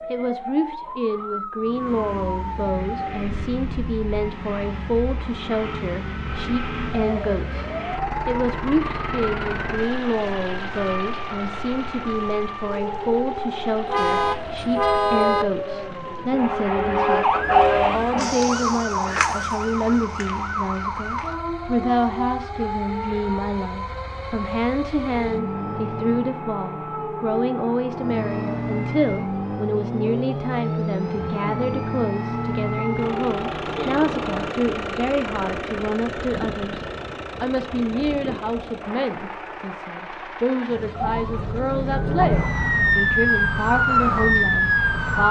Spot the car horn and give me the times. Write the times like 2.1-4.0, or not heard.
13.8-15.4.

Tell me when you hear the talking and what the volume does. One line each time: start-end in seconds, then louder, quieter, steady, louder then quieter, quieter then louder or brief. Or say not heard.
0.1-45.2 steady.